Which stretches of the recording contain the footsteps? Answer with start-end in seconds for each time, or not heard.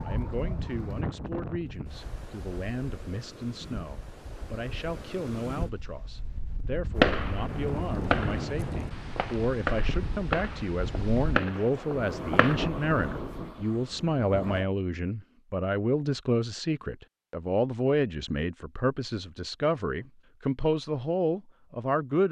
not heard.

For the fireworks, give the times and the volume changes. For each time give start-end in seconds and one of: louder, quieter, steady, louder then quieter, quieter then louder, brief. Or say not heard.
7.0-12.6 quieter then louder.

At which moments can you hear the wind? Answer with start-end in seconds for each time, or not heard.
0.0-14.7.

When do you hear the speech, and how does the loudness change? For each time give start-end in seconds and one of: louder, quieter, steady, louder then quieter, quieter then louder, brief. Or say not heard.
0.0-22.2 louder.